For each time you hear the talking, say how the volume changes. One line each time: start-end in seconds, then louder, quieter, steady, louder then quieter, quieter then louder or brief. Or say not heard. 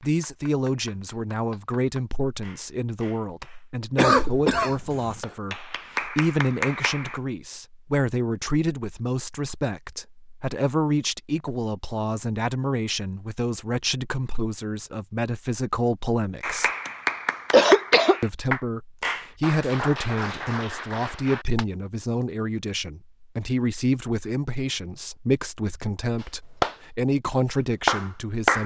0.0-16.7 steady
18.2-28.6 steady.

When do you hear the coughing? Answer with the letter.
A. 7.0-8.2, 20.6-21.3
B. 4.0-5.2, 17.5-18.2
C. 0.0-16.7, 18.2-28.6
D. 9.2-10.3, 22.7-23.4
B.